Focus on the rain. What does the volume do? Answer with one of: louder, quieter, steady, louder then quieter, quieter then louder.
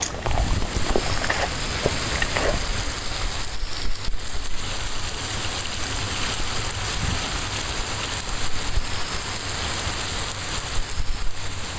steady.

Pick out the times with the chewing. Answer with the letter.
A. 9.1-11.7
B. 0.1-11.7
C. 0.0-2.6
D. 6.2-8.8
C.